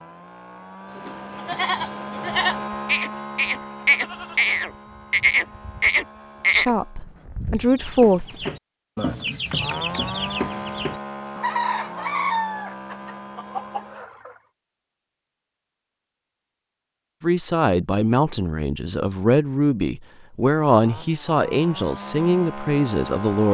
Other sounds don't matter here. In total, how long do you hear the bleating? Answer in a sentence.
The bleating can be heard for 7 seconds in total.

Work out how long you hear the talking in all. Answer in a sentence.
You can hear the talking for 8 seconds altogether.